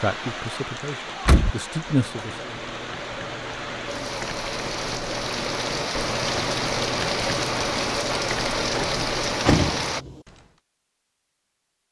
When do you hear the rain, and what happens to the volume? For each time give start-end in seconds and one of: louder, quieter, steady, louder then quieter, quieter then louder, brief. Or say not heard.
0.0-10.1 louder.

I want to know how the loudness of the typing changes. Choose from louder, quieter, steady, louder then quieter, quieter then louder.
louder.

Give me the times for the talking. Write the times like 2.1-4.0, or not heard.
0.0-2.6.